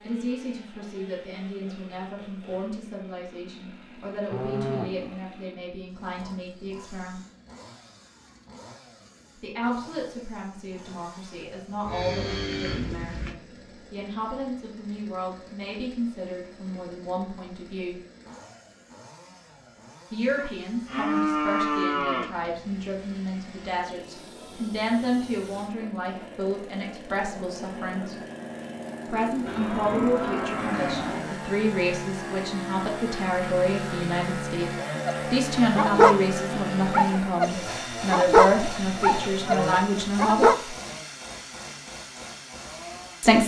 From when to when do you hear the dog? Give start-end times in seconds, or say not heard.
35.0-40.6.